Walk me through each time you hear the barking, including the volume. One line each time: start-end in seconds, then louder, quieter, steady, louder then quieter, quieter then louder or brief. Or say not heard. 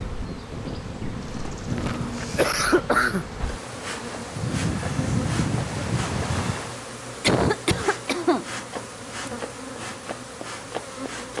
not heard.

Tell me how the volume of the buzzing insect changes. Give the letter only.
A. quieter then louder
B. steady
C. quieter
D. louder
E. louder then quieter
B.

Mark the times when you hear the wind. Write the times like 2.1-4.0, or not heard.
0.0-6.8.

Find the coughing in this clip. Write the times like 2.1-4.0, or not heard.
1.6-3.5, 7.2-8.4.